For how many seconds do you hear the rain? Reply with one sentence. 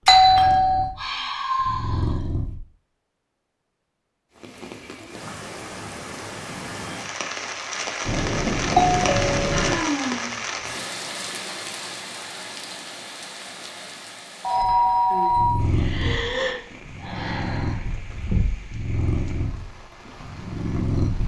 The rain can be heard for 17 seconds in total.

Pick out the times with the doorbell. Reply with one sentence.
The doorbell can be heard from 0.1 to 0.9 s, from 8.1 to 9.8 s and from 14.4 to 15.6 s.